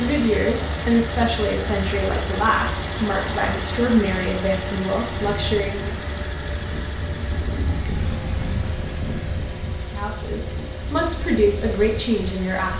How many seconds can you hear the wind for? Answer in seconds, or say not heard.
8 s.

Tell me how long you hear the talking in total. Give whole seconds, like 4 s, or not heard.
9 s.